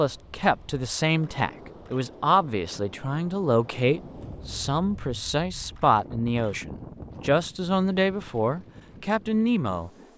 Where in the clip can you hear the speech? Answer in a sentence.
You can hear the speech from 0.0 to 9.9 s.